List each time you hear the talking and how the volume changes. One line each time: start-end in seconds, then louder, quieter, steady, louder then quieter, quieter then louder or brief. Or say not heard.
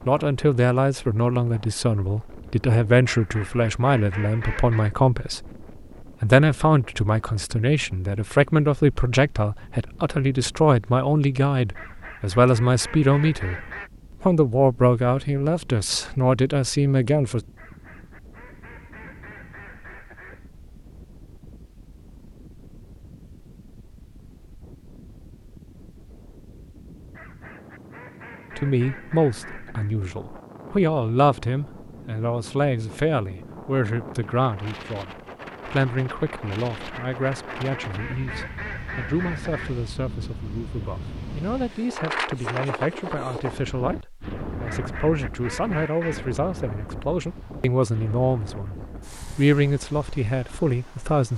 0.1-17.4 steady
28.6-51.3 quieter then louder.